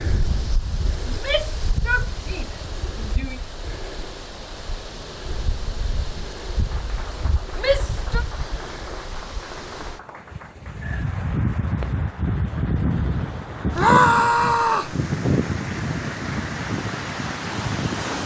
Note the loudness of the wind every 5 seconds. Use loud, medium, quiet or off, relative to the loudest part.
medium, medium, loud, loud.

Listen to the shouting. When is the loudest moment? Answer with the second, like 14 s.
14 s.